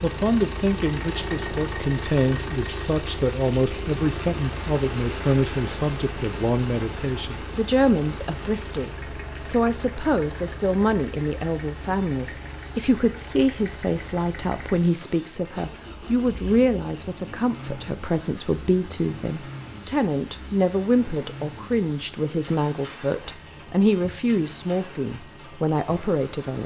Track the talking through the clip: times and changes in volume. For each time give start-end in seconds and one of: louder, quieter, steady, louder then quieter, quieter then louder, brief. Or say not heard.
0.0-26.6 steady.